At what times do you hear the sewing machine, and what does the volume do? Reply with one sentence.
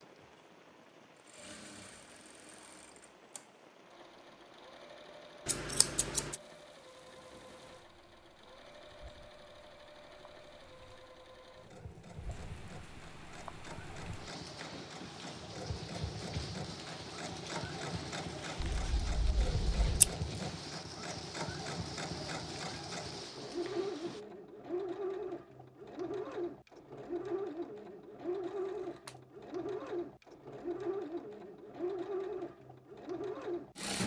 The sewing machine can be heard from 0.0 to 34.0 s, getting louder.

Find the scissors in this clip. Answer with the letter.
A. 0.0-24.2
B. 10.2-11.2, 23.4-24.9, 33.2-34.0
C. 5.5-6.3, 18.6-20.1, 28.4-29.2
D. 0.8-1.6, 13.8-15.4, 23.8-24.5
C.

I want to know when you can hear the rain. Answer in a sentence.
You can hear the rain from 0.0 to 24.2 s.